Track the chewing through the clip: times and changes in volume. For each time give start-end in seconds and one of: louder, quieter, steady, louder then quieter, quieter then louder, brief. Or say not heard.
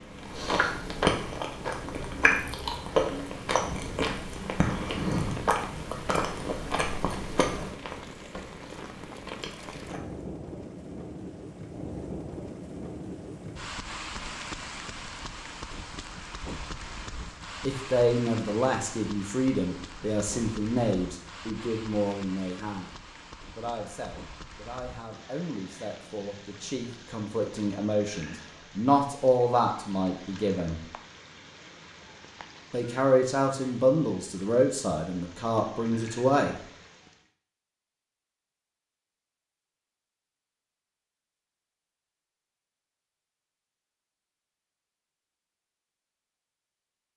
0.0-10.3 quieter.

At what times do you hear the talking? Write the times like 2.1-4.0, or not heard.
17.6-22.9, 23.6-30.9, 32.7-36.6.